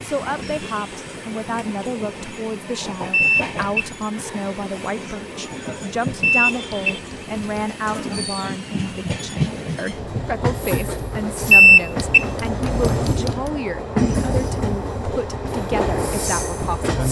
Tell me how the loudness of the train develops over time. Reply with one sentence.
The volume of the train goes up.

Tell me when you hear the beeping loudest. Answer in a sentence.
The volume of the beeping peaks at 12 seconds.